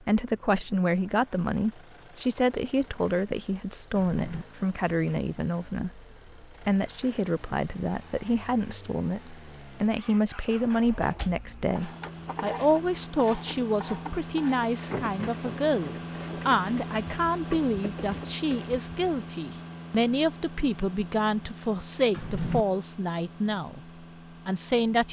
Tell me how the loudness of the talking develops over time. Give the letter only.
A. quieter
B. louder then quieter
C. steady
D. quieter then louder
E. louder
C.